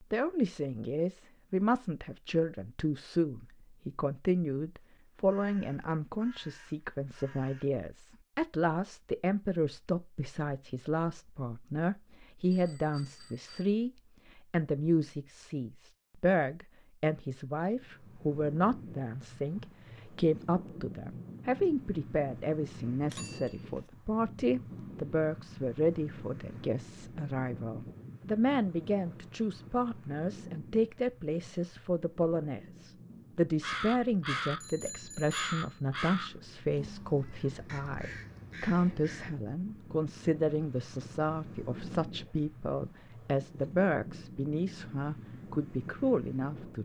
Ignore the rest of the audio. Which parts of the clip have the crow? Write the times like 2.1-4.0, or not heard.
4.8-7.7, 33.1-39.4.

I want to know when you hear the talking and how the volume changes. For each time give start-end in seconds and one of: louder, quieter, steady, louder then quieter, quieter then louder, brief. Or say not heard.
0.0-46.8 steady.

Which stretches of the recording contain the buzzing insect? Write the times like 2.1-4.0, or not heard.
not heard.